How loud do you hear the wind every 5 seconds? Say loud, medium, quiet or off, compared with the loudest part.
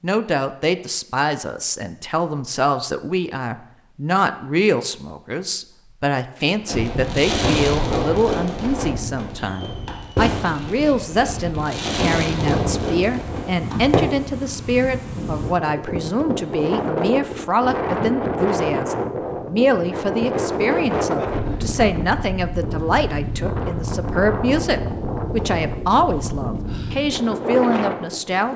off, medium, medium, loud, loud, loud.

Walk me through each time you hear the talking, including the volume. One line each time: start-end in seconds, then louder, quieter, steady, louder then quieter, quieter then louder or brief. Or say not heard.
0.0-28.5 steady.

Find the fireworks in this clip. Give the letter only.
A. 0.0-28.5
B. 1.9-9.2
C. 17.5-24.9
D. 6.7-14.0
D.